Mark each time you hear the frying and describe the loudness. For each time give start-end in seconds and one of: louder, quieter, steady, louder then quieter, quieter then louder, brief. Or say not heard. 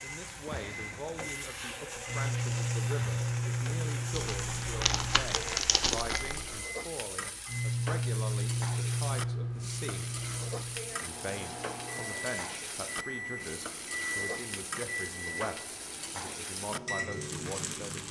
0.0-18.0 steady.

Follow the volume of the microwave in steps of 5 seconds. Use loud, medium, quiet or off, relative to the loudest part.
loud, loud, medium, medium.